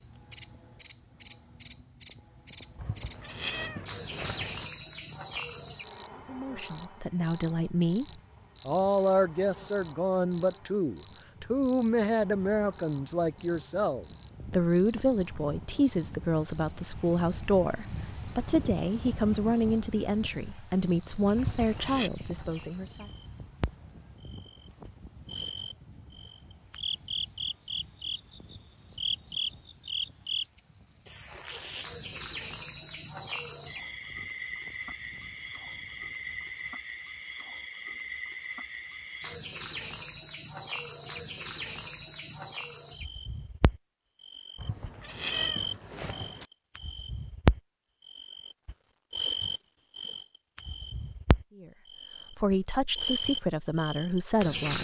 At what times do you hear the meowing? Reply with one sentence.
The meowing can be heard from 2.8 to 4.7 s, from 21.4 to 22.1 s and from 44.5 to 46.5 s.